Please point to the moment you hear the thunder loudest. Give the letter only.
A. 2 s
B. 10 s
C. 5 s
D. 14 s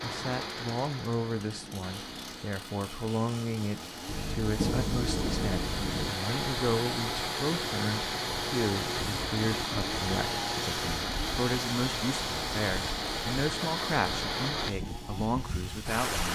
C.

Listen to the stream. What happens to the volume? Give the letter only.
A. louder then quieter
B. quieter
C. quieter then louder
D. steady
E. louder
E.